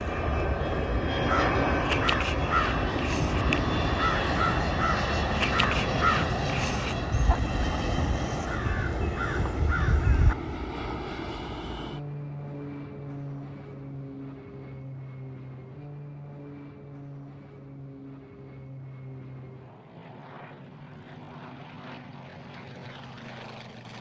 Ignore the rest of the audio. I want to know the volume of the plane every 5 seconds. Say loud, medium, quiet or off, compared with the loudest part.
loud, loud, medium, quiet, quiet.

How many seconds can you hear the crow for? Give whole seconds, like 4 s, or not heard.
9 s.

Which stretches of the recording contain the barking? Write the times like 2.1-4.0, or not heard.
not heard.